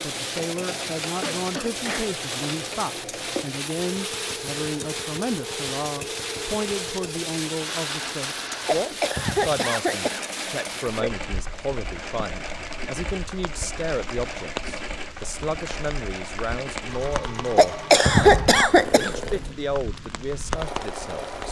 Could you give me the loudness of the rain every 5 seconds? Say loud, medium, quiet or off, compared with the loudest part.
loud, loud, medium, medium, loud.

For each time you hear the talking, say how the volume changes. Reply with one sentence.
The talking can be heard from 0.0 to 21.4 s, at a steady volume.